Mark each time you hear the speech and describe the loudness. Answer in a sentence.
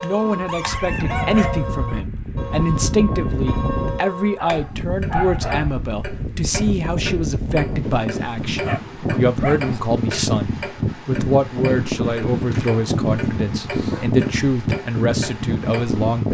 You can hear the speech from 0.0 to 16.2 s, at a steady volume.